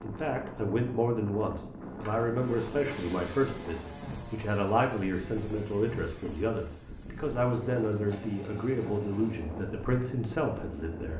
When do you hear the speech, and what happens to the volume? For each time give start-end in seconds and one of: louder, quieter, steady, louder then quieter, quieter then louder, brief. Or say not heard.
0.0-11.1 steady.